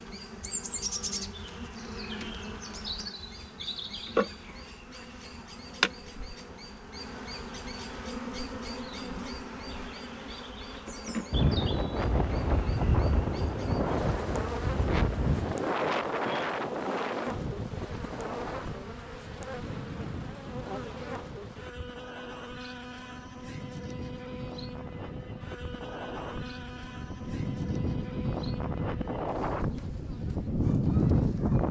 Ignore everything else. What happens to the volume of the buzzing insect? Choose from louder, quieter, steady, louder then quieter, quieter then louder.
quieter.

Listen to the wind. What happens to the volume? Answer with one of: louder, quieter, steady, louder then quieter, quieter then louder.
quieter then louder.